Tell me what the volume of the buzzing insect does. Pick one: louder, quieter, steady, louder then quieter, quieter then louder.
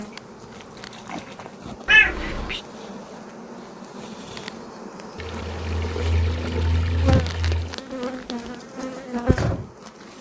louder.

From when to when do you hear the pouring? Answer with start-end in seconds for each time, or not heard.
0.1-1.6, 5.2-7.8.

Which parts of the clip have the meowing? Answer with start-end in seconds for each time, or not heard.
1.9-2.6, 7.2-8.6.